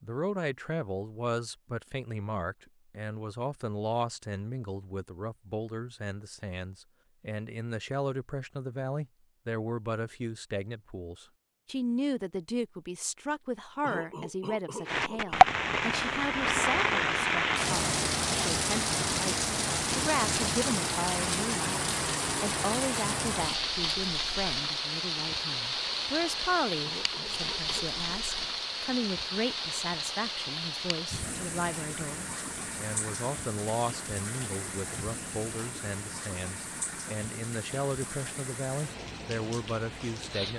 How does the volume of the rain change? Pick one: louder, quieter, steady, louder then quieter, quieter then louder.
quieter.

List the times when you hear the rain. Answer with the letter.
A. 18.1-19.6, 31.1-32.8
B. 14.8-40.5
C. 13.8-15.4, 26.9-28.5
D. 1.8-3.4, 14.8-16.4
B.